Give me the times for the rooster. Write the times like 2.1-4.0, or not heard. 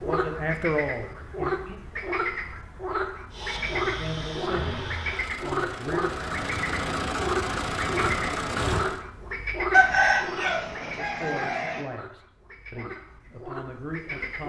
9.7-11.8.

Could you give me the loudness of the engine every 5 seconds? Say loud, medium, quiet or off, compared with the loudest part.
medium, loud, off.